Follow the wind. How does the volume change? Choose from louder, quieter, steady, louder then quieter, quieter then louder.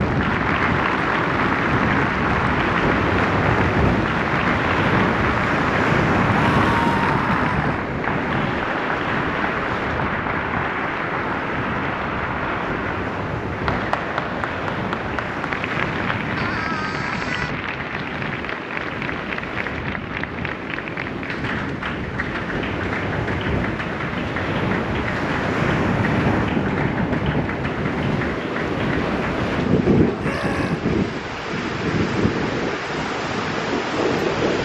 quieter then louder.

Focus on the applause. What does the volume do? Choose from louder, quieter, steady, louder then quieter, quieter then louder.
quieter.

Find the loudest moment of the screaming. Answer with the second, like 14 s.
7 s.